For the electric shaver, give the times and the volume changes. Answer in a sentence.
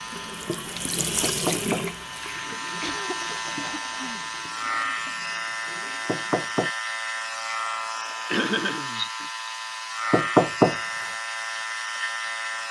The electric shaver can be heard from 0.0 to 12.6 s, getting louder.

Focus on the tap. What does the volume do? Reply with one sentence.
The loudness of the tap goes down.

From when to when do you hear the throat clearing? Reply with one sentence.
You can hear the throat clearing from 2.8 to 4.2 s and from 8.2 to 9.2 s.